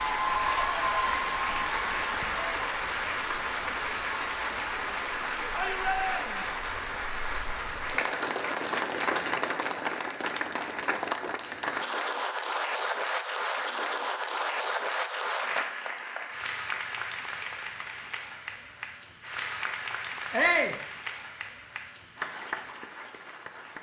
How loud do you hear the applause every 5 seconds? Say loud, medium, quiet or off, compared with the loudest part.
loud, loud, loud, medium, medium.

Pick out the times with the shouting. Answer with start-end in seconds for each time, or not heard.
5.5-6.5, 20.3-20.8.